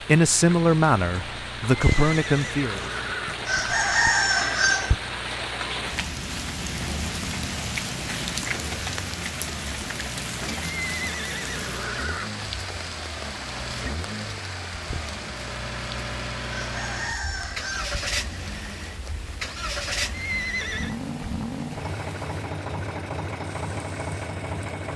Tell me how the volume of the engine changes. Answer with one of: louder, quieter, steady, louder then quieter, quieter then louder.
louder.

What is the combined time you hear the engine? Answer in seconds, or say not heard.
25 s.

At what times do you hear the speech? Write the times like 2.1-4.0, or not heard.
0.1-2.8.